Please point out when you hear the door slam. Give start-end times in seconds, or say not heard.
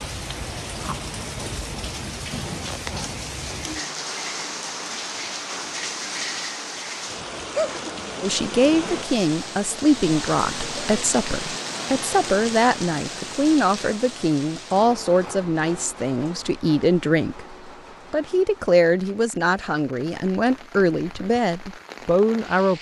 not heard.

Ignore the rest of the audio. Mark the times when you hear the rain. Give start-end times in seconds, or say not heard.
0.0-22.7.